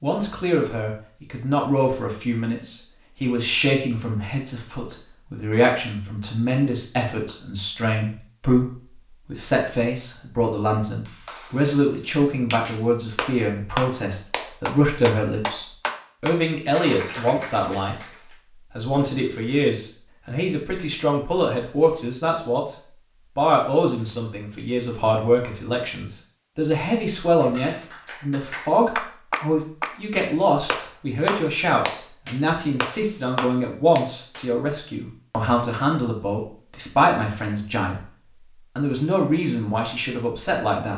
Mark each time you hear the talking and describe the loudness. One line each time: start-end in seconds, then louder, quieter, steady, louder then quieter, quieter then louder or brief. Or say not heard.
0.0-22.8 steady
23.4-38.1 steady
38.8-40.9 brief.